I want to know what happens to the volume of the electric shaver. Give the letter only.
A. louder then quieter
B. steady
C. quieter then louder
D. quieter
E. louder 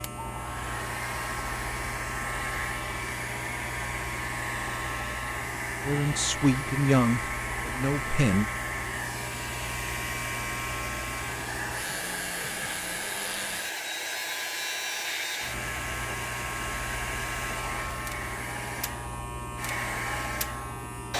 B.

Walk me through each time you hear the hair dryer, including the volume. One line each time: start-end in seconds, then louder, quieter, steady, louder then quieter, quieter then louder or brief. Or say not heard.
0.0-21.1 steady.